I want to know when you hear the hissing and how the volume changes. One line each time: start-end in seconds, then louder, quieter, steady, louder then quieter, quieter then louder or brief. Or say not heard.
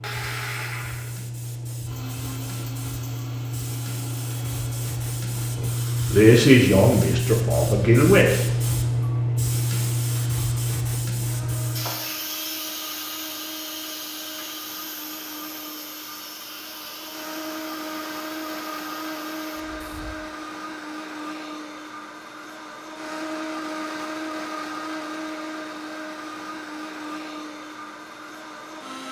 0.0-20.1 louder then quieter.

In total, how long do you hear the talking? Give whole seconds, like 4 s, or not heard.
3 s.